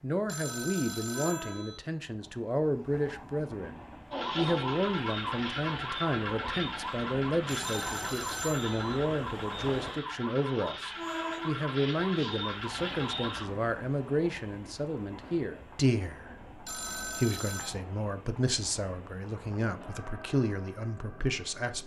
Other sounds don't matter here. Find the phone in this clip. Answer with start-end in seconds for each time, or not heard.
0.2-1.8, 7.5-9.0, 16.6-17.8.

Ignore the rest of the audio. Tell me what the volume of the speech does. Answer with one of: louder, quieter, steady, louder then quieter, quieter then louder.
steady.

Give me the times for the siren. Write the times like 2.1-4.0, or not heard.
4.1-13.4.